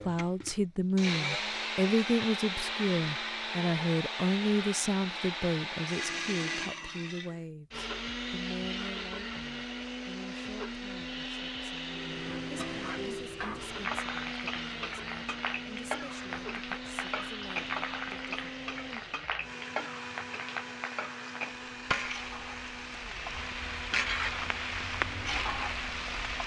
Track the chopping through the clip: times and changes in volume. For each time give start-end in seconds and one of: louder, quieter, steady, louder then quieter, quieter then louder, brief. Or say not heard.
not heard.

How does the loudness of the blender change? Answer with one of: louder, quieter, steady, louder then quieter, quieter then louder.
quieter.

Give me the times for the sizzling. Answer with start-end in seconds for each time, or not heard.
11.8-26.4.